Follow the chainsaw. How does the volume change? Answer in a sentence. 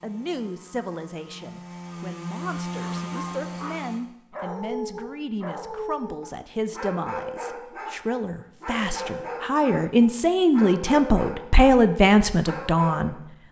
The volume of the chainsaw goes up.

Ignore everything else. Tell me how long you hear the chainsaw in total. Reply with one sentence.
You can hear the chainsaw for 4 seconds altogether.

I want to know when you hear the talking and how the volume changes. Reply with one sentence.
The talking can be heard from 0.0 to 13.2 s, getting louder.